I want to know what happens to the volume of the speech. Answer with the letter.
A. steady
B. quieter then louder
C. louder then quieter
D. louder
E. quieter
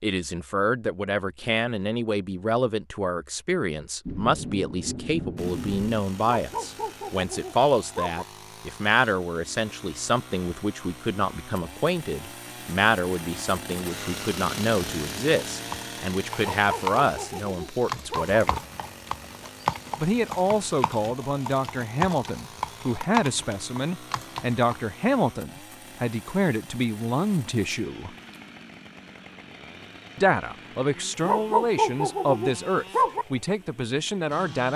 A.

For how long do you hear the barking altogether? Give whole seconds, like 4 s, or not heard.
6 s.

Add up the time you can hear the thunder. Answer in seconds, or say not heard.
2 s.